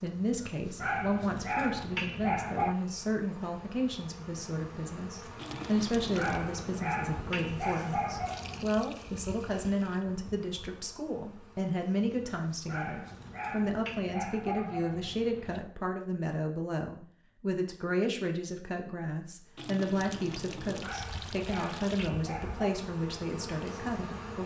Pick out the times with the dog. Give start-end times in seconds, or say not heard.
0.8-2.8, 6.2-8.8, 12.7-15.7, 20.8-22.8.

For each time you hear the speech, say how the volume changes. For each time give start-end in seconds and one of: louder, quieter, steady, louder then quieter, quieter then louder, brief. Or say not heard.
0.0-24.4 steady.